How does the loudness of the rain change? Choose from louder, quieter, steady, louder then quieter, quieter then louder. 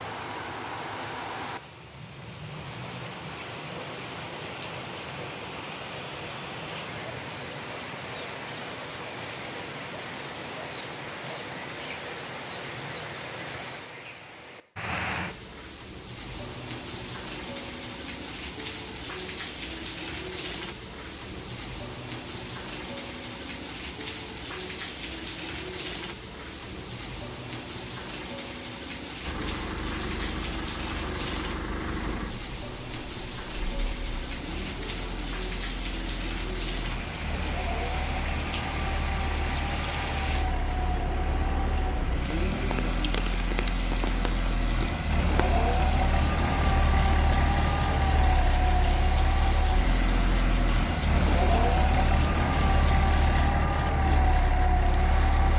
steady.